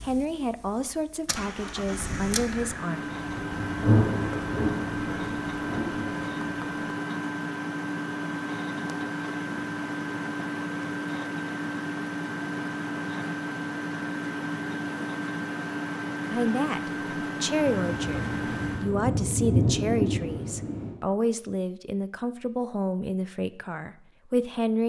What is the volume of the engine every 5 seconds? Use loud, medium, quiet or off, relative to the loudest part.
loud, loud, loud, loud, off.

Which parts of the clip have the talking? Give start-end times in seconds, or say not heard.
0.0-3.0, 16.3-24.8.